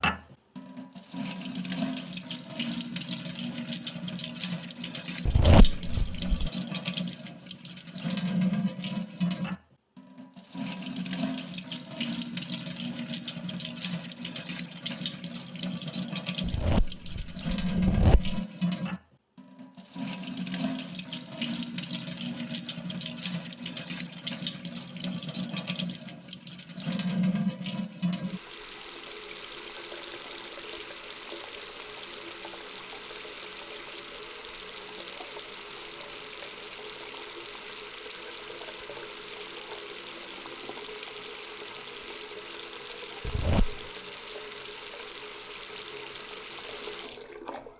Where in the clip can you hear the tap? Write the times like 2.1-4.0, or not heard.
0.0-47.7.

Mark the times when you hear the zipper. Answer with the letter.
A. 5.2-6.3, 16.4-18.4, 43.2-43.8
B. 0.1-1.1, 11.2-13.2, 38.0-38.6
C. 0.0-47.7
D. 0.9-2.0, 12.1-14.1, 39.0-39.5
A.